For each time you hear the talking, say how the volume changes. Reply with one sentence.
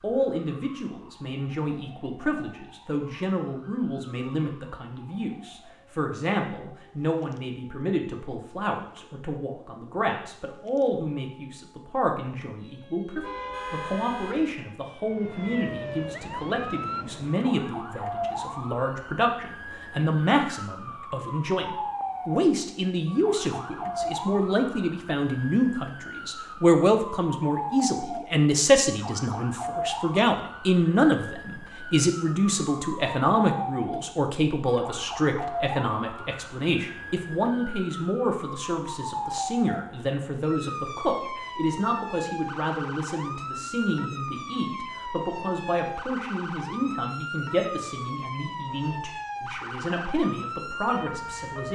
The talking can be heard from 0.0 to 51.7 s, getting louder then quieter.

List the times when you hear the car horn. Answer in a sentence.
The car horn can be heard from 13.2 to 14.6 s.